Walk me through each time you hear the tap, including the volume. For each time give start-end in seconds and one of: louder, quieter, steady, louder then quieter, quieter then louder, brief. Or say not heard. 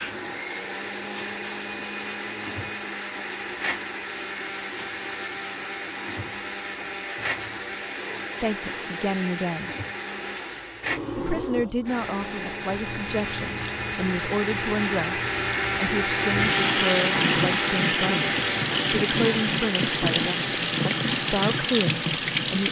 0.0-22.6 louder.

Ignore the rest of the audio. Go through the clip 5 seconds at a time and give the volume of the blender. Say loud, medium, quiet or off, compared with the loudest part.
medium, medium, medium, loud, medium.